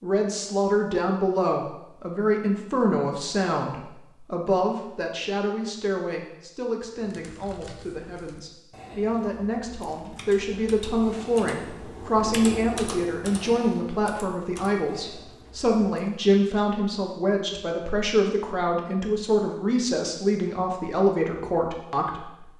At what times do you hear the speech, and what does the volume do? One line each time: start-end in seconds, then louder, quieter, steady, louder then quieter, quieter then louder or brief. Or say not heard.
0.0-22.4 quieter then louder.